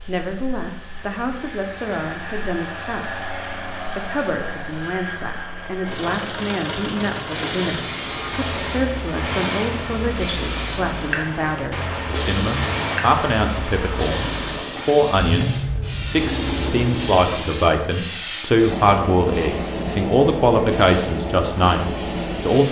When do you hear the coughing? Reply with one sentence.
The coughing can't be heard in this clip.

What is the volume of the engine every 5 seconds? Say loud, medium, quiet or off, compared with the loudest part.
medium, loud, loud, loud, off.